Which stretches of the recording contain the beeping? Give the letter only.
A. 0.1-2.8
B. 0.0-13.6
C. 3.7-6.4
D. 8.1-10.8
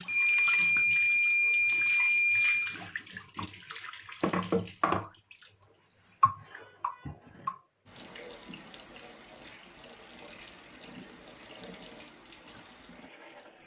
A.